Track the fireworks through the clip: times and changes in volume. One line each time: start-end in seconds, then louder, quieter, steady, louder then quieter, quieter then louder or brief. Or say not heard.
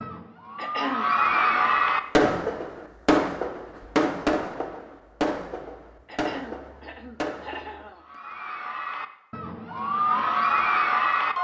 1.4-7.9 quieter.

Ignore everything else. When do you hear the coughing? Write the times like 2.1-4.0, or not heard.
0.6-1.6, 6.0-8.1.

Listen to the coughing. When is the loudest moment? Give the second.
1 s.